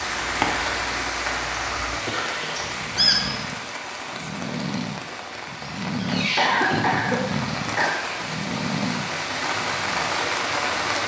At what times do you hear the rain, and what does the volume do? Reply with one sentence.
The rain can be heard from 0.0 to 11.0 s, getting quieter then louder.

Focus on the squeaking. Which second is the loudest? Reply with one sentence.
The volume of the squeaking peaks at 3 seconds.